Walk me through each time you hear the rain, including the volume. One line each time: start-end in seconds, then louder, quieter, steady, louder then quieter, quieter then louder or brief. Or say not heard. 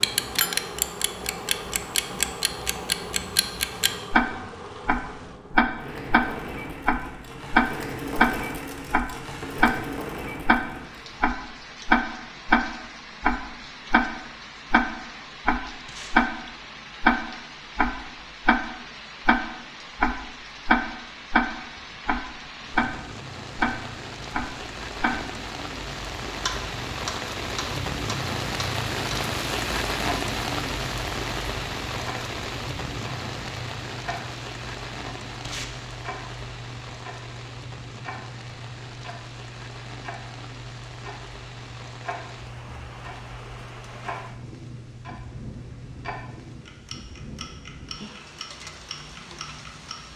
0.0-50.1 louder then quieter.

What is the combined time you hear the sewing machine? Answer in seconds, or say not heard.
11 s.